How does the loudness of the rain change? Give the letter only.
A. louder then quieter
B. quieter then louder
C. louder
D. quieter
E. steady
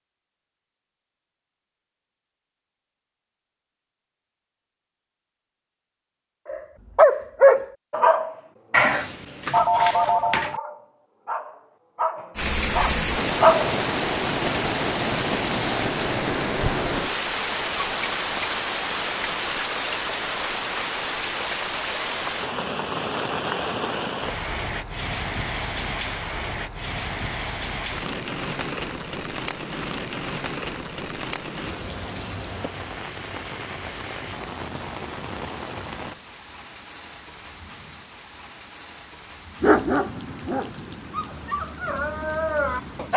D.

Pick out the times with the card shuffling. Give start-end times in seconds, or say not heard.
8.7-10.6.